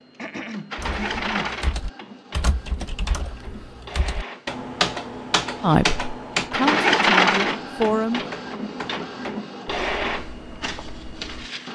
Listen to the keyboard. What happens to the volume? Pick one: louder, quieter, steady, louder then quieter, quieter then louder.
louder then quieter.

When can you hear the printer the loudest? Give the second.
7 s.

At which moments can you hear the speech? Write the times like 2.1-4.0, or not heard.
5.6-8.2.